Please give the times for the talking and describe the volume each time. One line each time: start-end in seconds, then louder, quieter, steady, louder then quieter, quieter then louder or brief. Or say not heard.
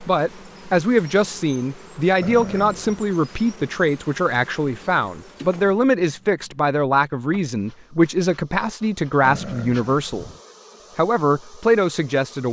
0.1-10.3 steady
10.9-12.4 brief.